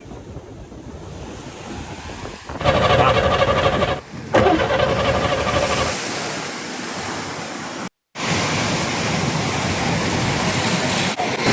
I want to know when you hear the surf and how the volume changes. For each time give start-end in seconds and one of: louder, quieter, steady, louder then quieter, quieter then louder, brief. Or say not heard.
0.0-11.4 louder.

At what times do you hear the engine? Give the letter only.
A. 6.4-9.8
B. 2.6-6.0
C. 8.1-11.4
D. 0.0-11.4
B.